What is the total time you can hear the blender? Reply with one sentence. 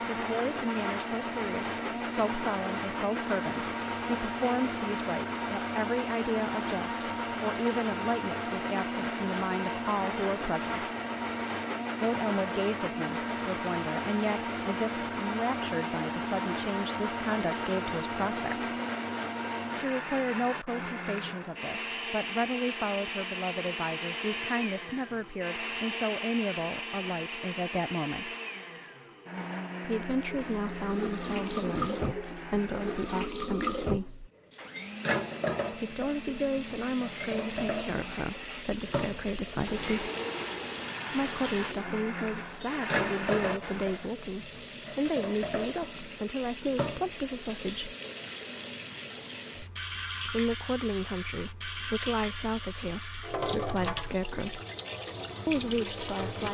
You can hear the blender for 44 seconds altogether.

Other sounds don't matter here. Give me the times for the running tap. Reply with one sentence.
You can hear the running tap from 30.2 to 56.4 s.